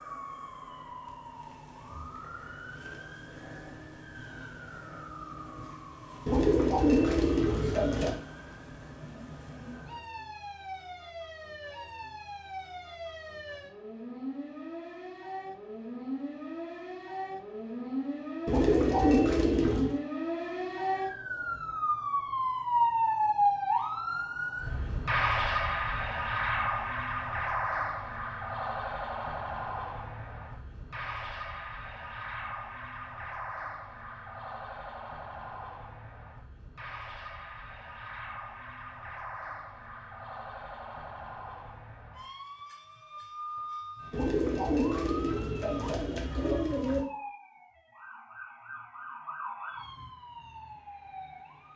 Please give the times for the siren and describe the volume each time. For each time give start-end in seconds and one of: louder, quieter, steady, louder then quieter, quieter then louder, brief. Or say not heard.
0.0-51.7 louder then quieter.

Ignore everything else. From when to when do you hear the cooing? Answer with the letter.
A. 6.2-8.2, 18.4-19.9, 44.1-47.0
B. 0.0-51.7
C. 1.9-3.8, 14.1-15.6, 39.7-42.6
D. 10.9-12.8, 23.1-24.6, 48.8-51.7
A.